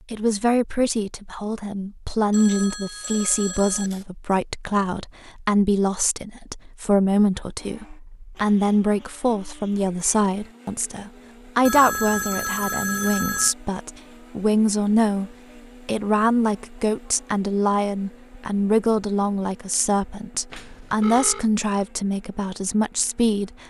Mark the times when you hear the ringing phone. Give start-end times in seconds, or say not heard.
2.3-4.0, 11.7-13.6, 20.5-21.5.